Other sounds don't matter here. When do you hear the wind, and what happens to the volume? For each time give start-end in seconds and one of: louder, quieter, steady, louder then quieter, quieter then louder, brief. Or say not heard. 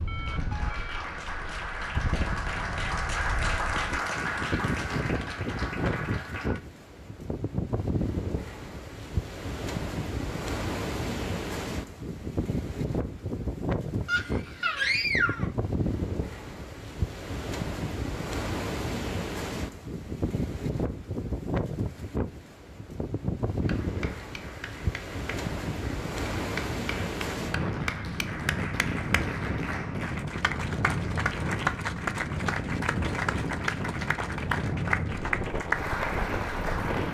0.0-37.0 steady.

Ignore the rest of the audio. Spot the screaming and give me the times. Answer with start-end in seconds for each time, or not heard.
14.1-15.5.